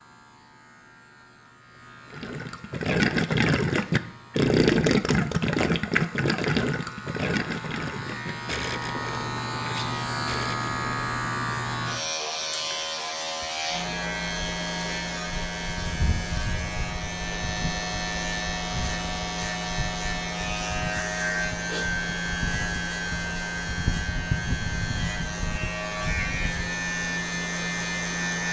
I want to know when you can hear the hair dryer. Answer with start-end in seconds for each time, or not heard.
not heard.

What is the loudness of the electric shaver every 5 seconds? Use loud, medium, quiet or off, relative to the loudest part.
quiet, medium, loud, loud, loud, loud.